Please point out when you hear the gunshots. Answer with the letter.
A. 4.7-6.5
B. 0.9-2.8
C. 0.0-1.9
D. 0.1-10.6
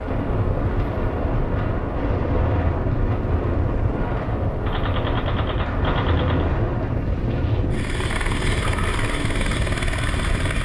A.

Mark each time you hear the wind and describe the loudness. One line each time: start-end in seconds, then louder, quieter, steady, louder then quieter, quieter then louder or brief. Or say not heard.
0.1-10.6 steady.